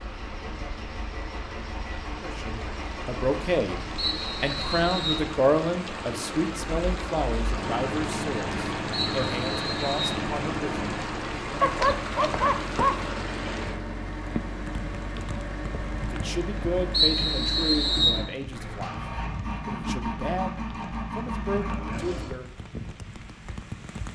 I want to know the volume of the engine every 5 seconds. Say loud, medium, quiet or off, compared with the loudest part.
medium, loud, loud, loud, loud.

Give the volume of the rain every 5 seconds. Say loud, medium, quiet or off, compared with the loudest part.
medium, loud, loud, medium, medium.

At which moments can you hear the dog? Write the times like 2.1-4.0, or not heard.
11.6-13.1.